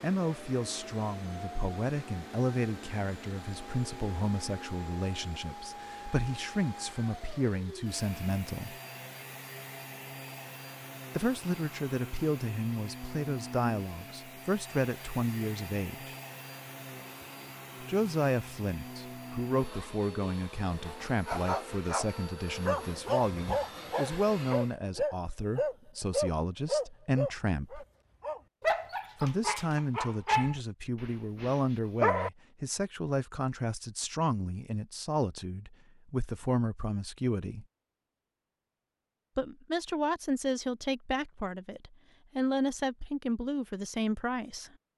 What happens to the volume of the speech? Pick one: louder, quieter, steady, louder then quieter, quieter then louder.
steady.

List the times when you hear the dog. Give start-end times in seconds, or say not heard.
21.1-32.3.